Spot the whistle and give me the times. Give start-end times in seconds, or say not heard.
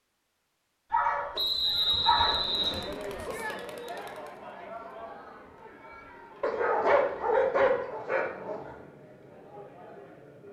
1.4-2.9.